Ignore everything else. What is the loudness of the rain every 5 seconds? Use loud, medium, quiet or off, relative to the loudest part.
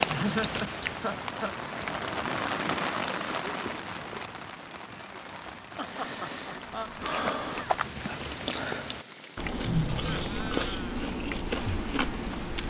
loud, medium, medium.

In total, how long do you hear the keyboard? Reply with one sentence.
The keyboard can't be heard in this clip.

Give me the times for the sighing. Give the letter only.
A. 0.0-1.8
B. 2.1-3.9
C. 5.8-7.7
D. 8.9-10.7
C.